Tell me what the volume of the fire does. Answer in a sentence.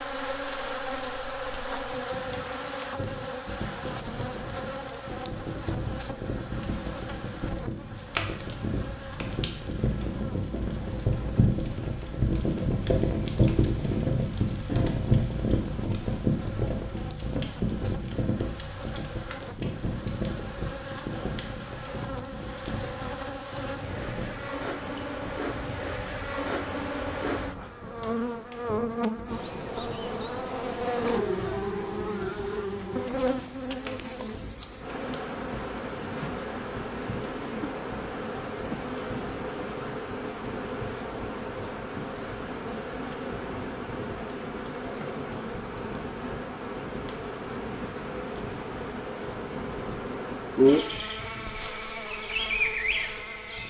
The loudness of the fire goes up, then down.